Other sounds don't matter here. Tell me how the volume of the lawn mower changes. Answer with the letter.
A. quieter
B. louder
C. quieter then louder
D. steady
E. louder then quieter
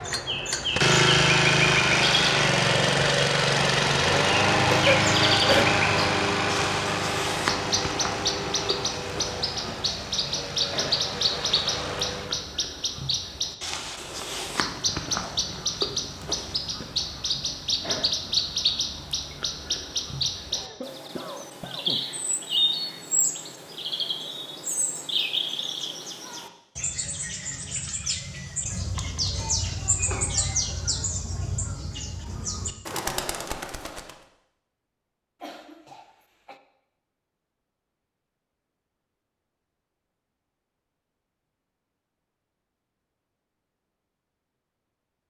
A.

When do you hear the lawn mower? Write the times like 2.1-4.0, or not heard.
0.0-12.5.